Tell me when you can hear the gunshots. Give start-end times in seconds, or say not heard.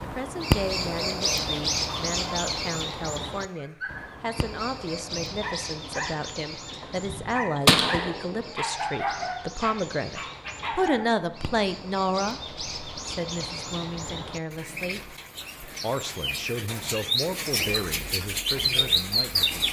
7.7-8.4.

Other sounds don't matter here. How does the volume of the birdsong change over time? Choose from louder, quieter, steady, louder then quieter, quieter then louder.
quieter then louder.